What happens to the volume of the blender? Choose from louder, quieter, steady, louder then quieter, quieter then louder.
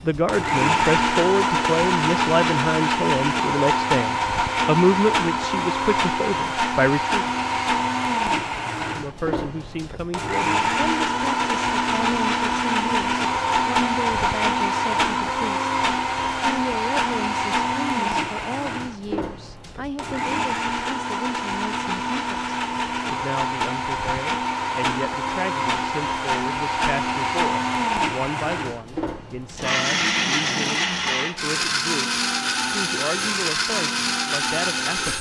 steady.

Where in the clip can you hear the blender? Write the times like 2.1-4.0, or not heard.
0.0-35.1.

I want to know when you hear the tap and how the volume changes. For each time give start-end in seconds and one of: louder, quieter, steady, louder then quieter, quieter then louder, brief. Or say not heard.
not heard.